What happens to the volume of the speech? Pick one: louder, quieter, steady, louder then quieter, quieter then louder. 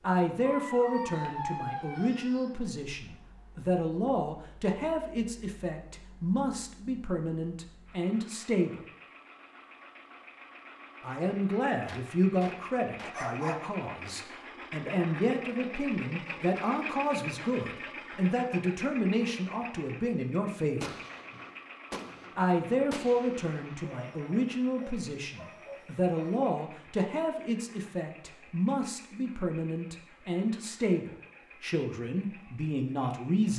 steady.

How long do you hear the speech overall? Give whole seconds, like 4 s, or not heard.
30 s.